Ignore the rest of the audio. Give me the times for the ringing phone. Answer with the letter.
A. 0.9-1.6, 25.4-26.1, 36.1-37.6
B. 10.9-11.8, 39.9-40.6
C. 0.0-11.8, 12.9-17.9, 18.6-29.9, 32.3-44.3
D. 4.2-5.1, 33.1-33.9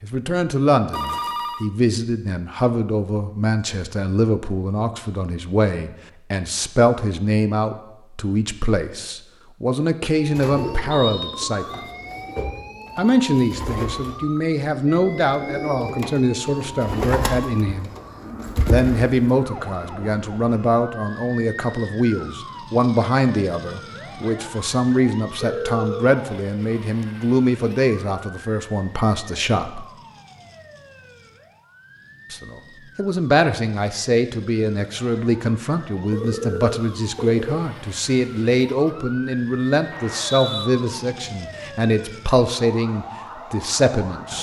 A.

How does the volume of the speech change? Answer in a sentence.
The volume of the speech stays about the same.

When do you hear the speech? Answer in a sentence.
The speech can be heard from 0.0 to 11.8 s, from 12.9 to 17.9 s, from 18.6 to 29.9 s and from 32.3 to 44.3 s.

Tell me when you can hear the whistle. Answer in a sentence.
The whistle can be heard from 10.9 to 11.8 s and from 39.9 to 40.6 s.